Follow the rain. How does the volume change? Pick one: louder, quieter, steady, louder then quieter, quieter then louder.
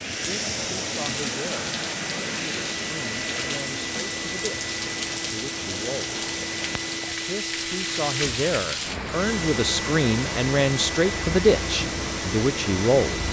steady.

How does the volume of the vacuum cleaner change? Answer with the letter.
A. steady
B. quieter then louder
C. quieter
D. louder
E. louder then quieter
A.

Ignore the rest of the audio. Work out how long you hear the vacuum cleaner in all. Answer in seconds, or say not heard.
13 s.